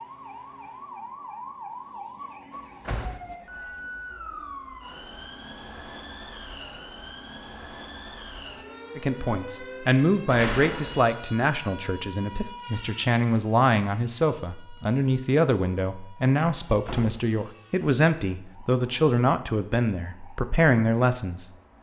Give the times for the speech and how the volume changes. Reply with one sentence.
You can hear the speech from 8.9 to 21.5 s, at a steady volume.